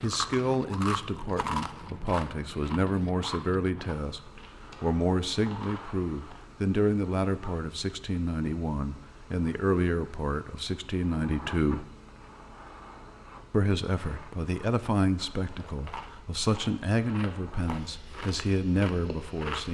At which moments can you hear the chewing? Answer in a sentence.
You can hear the chewing from 0.0 to 6.4 s and from 15.6 to 19.6 s.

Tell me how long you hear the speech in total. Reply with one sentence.
You can hear the speech for 18 seconds altogether.